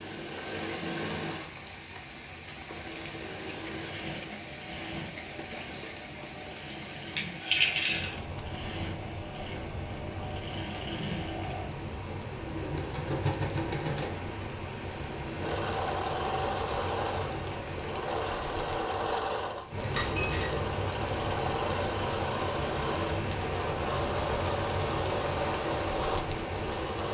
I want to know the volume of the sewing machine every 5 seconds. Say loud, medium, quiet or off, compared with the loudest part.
medium, medium, loud, loud, loud, loud.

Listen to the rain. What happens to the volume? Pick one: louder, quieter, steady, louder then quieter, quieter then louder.
louder.